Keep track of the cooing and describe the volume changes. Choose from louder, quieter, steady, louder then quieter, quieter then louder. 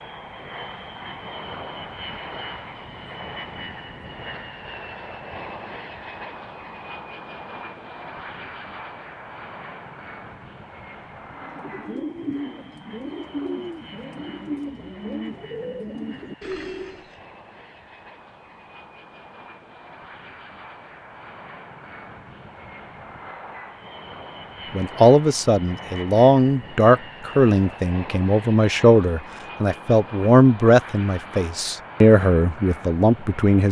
steady.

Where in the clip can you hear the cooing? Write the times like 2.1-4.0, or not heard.
11.3-17.1.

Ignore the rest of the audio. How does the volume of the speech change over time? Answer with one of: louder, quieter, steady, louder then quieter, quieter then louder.
steady.